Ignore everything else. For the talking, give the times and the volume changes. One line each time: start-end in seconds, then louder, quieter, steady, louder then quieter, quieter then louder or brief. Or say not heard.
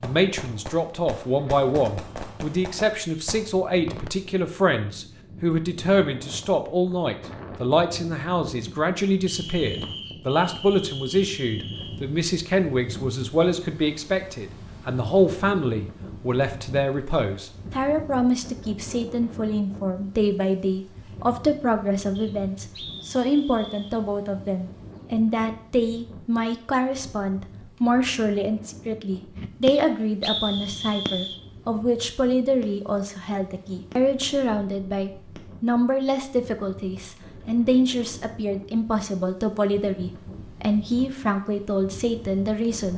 0.0-42.9 steady.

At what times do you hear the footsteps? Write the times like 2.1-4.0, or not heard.
not heard.